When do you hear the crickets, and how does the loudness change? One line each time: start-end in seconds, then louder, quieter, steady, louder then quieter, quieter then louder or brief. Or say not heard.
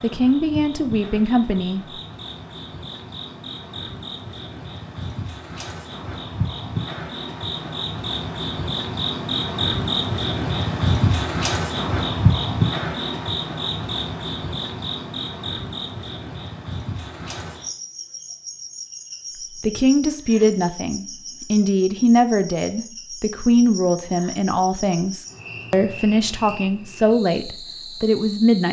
0.0-28.6 louder then quieter.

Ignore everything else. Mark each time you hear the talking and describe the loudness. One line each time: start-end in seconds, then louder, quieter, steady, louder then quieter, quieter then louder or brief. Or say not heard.
0.0-1.8 brief
19.6-28.6 steady.